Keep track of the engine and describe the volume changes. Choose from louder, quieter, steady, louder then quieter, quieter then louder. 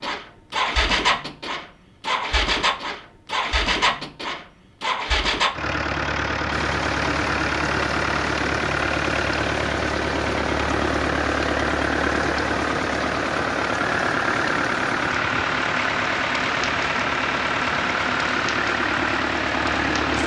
steady.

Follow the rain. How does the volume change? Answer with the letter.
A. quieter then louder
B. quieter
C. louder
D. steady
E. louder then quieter
D.